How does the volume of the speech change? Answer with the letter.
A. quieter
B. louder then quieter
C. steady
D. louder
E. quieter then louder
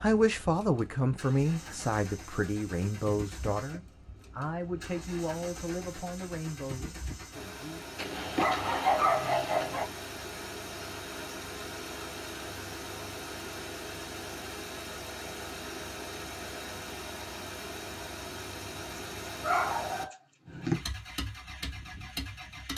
A.